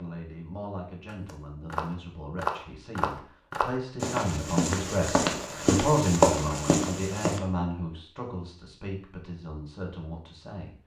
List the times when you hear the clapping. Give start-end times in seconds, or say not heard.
not heard.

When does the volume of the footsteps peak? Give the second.
6 s.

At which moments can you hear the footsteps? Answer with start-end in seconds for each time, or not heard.
1.1-7.4.